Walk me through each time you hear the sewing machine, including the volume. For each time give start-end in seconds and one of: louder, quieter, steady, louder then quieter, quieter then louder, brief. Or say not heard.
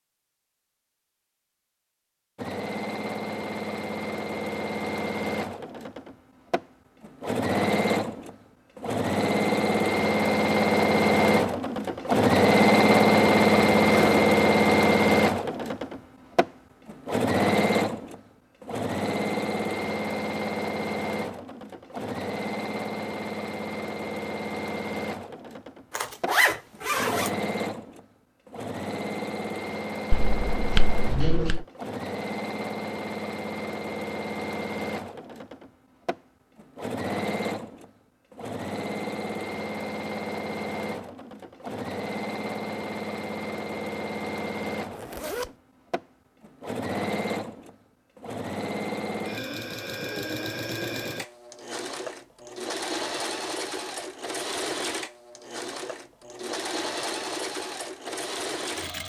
2.4-59.0 quieter.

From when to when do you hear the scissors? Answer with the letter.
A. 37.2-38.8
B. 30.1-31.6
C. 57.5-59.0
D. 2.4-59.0
B.